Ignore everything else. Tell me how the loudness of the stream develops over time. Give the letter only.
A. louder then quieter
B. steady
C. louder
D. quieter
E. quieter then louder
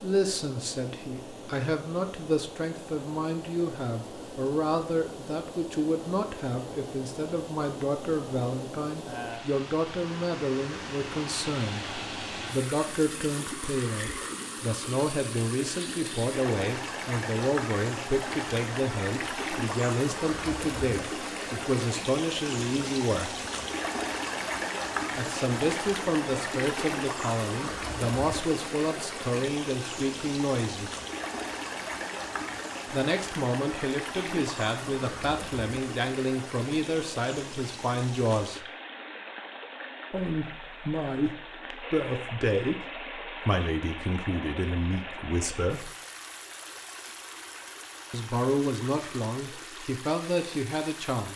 A.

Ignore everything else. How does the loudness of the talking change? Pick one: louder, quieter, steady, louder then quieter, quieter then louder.
steady.